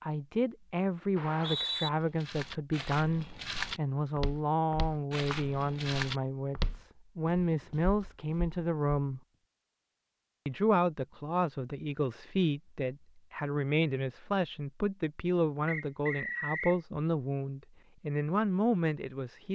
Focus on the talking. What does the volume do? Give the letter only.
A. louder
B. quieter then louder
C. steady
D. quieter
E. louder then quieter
C.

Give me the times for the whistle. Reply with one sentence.
The whistle can be heard from 1.1 to 1.9 s and from 15.7 to 16.8 s.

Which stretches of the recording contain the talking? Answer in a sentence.
You can hear the talking from 0.0 to 9.2 s and from 10.4 to 19.4 s.